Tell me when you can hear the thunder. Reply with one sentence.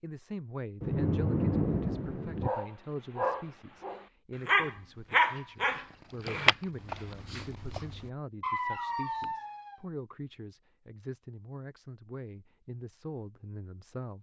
You can hear the thunder from 0.8 to 2.5 s.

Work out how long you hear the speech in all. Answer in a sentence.
The speech can be heard for 14 seconds in total.